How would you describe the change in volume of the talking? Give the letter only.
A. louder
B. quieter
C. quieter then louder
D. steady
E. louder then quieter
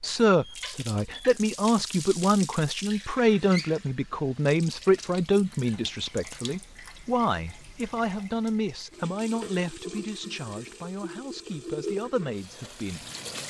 B.